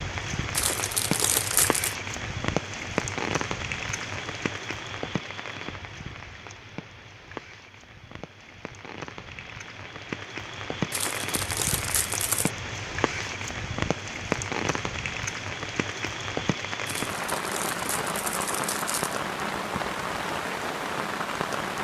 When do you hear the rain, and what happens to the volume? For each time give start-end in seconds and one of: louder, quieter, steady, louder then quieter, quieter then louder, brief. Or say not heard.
0.0-21.7 quieter then louder.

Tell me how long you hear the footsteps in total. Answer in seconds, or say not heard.
not heard.